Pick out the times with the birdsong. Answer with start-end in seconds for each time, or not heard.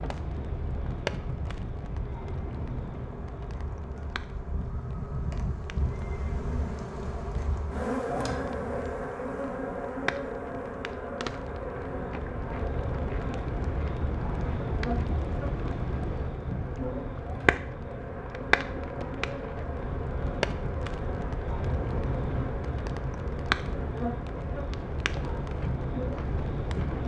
not heard.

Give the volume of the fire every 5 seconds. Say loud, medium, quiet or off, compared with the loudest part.
medium, quiet, loud, loud, loud, loud.